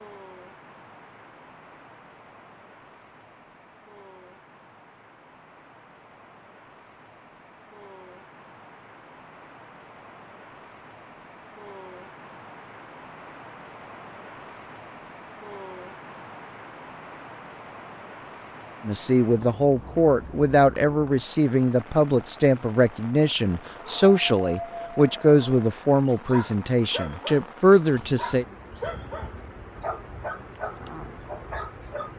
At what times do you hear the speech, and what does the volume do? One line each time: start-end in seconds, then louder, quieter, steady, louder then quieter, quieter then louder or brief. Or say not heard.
18.9-28.4 steady.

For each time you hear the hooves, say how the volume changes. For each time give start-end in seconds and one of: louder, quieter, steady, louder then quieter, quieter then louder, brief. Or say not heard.
not heard.